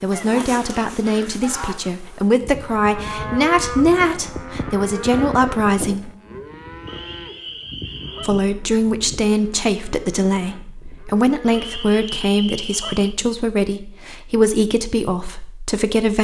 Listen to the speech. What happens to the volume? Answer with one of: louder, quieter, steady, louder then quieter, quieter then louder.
steady.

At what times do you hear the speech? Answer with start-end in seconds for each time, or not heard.
0.0-6.1, 8.2-16.1.